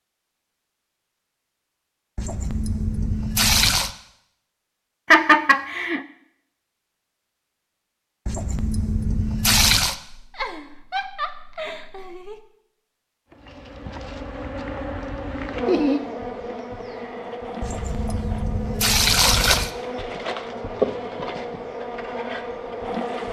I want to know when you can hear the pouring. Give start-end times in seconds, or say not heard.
2.1-3.9, 8.2-9.9, 17.6-19.7.